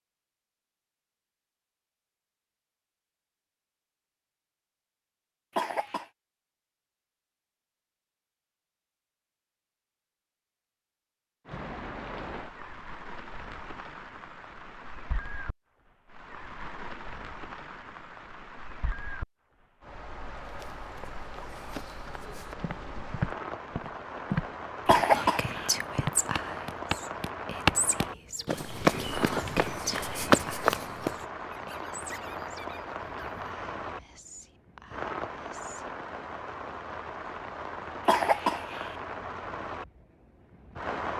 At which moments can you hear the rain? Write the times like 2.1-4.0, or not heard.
11.4-41.1.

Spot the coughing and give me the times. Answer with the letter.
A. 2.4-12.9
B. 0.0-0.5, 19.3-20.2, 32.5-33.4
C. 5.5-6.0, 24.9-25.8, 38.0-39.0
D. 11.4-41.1
C.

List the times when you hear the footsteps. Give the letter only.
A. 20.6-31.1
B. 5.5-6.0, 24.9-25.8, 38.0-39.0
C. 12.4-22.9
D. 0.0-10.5
A.